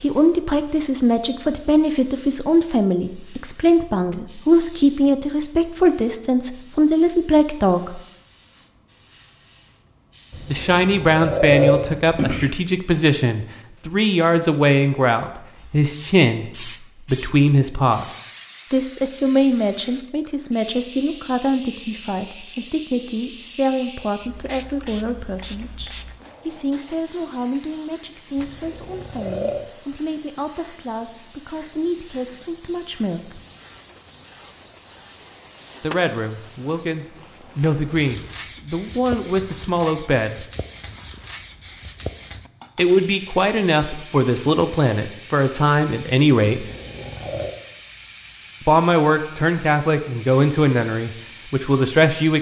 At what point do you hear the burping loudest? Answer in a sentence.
The loudest moment of the burping is at 12 seconds.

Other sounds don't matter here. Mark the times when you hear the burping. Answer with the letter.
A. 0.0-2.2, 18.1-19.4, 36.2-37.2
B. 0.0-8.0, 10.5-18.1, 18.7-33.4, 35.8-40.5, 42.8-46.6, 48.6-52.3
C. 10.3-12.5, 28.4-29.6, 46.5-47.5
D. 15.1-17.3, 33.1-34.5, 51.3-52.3
C.